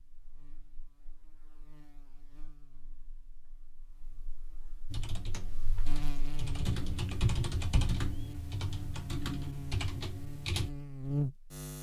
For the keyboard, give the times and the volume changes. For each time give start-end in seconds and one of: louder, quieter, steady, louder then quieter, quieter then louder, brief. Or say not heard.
4.9-10.7 louder then quieter.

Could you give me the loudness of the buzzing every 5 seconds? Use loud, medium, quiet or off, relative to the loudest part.
quiet, medium, loud.